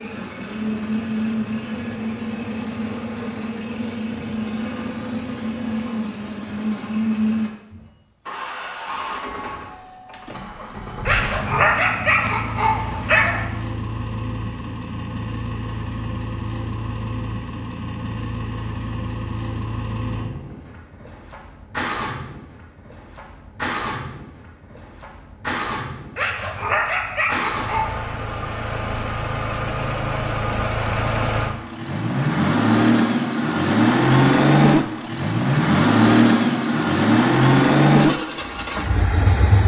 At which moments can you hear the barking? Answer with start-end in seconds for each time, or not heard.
11.1-13.4, 26.1-27.9.